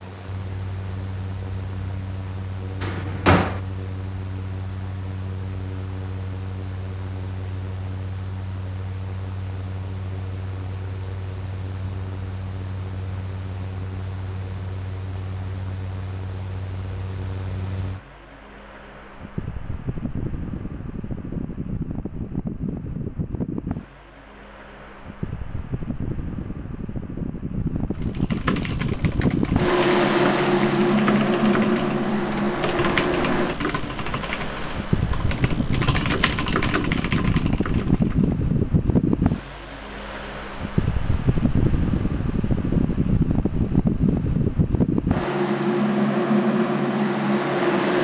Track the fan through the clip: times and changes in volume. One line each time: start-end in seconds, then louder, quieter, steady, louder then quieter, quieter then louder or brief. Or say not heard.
0.0-47.9 louder.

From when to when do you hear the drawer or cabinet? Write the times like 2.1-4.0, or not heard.
2.8-3.6.